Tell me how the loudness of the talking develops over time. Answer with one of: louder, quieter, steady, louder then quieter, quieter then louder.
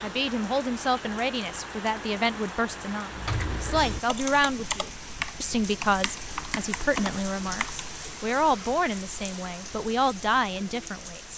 steady.